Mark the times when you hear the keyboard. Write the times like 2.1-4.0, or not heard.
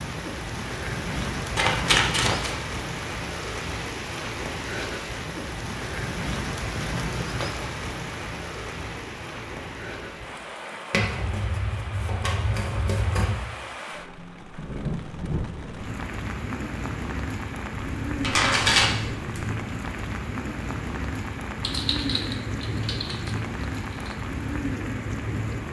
21.6-24.1.